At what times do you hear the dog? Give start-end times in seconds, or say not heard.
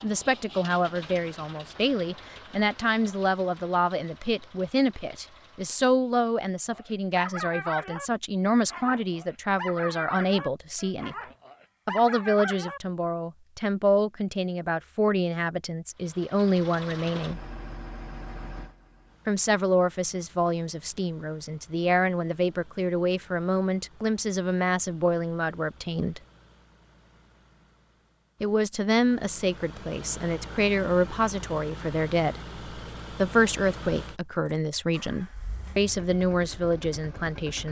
6.7-12.8.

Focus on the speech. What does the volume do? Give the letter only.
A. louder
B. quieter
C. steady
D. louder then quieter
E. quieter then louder
C.